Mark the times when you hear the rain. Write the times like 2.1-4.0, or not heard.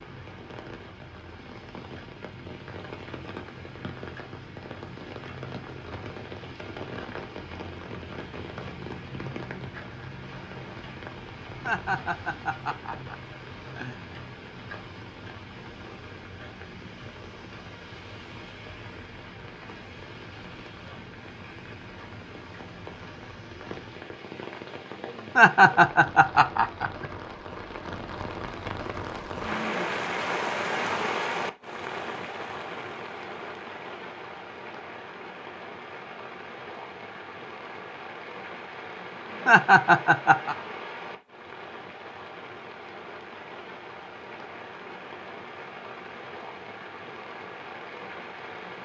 0.0-48.8.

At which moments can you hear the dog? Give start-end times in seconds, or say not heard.
not heard.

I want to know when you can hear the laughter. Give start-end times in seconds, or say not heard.
11.6-14.1, 25.4-27.1, 39.5-40.5.